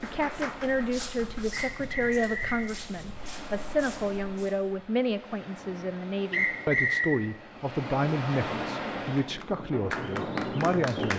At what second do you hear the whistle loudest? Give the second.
7 s.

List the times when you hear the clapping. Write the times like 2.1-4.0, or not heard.
0.0-1.7, 9.2-11.1.